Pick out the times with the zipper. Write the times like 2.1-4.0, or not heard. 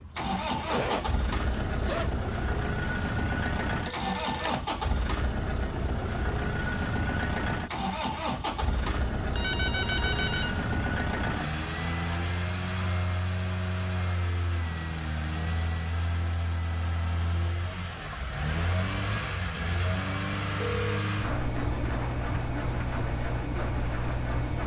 0.3-2.1.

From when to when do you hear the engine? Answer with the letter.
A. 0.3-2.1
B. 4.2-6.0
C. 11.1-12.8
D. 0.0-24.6
D.